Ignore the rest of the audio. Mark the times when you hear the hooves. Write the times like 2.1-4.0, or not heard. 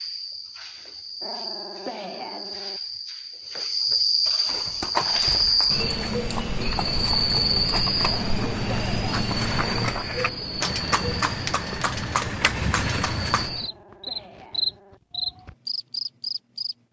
4.5-13.5.